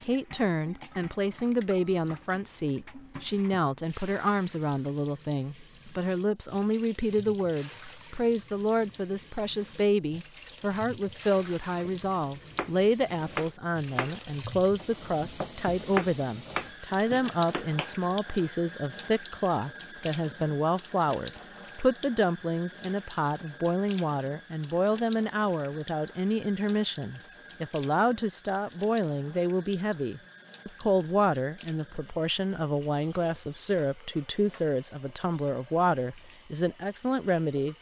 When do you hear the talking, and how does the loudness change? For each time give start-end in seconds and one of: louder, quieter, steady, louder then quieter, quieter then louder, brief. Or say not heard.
0.1-37.7 steady.